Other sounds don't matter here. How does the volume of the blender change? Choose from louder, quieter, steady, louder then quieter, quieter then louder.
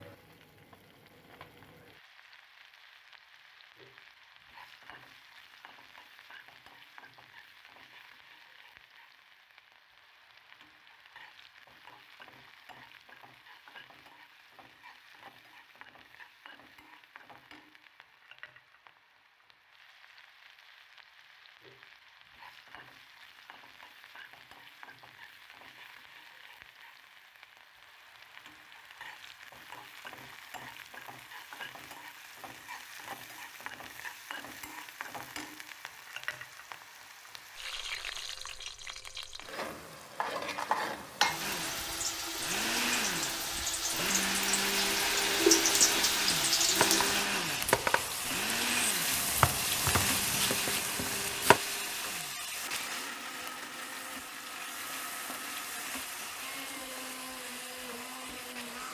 quieter.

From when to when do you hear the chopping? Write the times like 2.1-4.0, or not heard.
45.7-51.6.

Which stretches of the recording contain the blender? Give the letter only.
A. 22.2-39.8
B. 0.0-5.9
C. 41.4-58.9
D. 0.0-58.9
C.